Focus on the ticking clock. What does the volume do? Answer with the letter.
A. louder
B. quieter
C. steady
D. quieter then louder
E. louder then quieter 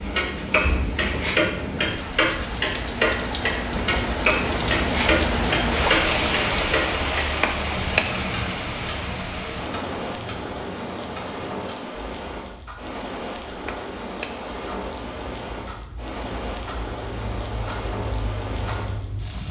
D.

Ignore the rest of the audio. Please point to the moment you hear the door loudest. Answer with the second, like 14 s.
8 s.